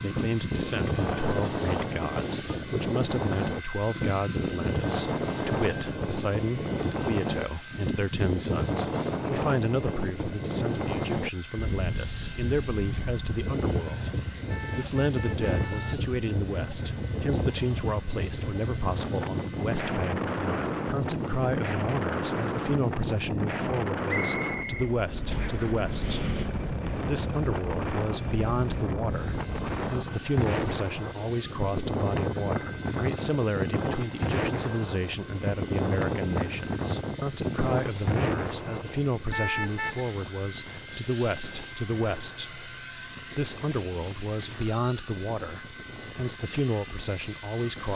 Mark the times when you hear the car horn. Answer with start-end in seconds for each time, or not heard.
14.4-16.1, 39.3-40.0.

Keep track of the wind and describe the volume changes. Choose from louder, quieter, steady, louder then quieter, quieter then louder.
quieter.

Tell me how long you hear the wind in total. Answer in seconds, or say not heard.
48 s.